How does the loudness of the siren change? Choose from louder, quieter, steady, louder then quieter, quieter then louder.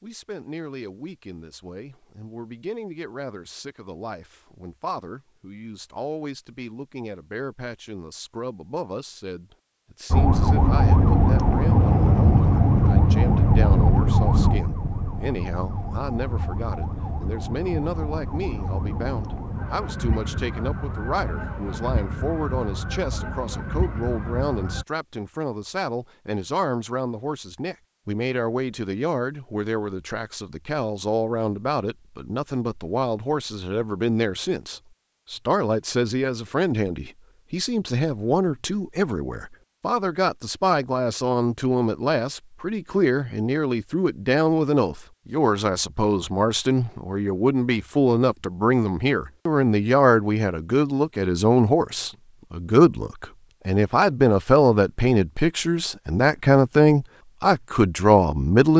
quieter.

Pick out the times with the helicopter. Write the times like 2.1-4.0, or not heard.
not heard.